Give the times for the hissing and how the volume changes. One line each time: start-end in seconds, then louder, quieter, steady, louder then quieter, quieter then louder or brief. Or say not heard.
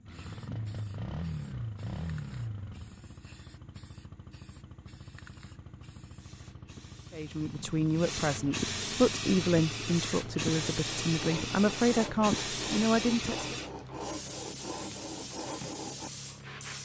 0.0-16.8 louder then quieter.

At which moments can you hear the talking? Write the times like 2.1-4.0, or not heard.
7.1-13.6.